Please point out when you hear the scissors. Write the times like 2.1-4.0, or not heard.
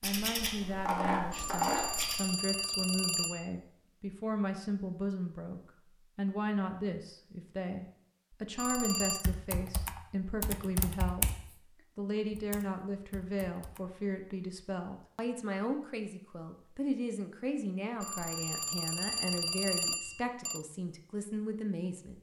0.0-2.2.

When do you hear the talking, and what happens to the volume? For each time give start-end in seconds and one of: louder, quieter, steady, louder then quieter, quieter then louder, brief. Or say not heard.
0.0-11.3 steady
11.9-22.1 steady.